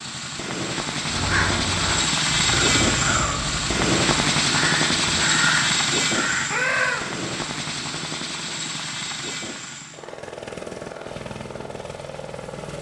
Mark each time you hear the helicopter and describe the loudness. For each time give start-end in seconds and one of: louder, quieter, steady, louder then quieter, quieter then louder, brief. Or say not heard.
0.0-12.7 quieter.